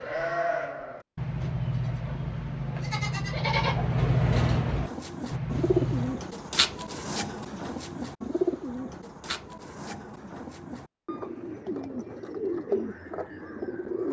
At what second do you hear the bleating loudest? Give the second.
4 s.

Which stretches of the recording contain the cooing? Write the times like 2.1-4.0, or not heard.
4.8-14.0.